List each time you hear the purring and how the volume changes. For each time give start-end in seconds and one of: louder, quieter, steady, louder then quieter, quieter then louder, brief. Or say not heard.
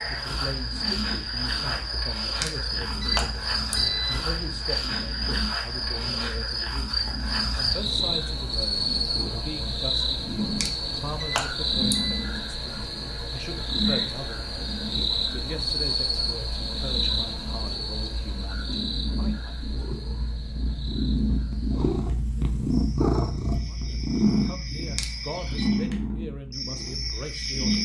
0.0-27.7 louder.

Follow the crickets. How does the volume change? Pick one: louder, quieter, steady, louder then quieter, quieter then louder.
quieter.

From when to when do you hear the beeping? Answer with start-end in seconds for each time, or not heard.
2.4-4.2, 10.6-12.2, 24.9-25.7.